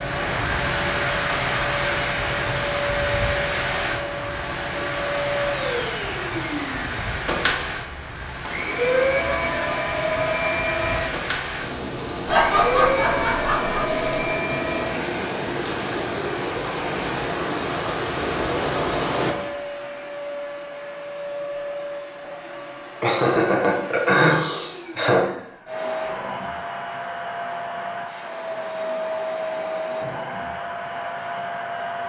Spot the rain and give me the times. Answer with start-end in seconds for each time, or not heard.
0.0-19.5.